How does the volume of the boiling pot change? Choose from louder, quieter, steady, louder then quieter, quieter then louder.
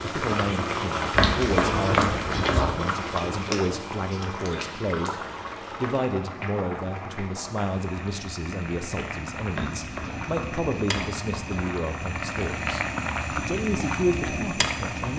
quieter then louder.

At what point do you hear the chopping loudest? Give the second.
2 s.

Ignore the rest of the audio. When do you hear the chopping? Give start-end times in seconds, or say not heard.
1.1-2.7, 9.5-11.1.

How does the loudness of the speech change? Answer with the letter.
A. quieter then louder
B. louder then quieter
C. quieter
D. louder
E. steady
E.